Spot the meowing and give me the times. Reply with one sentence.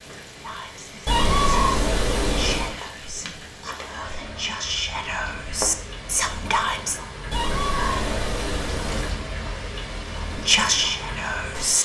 You can hear the meowing from 1.1 to 2.8 s and from 7.3 to 9.2 s.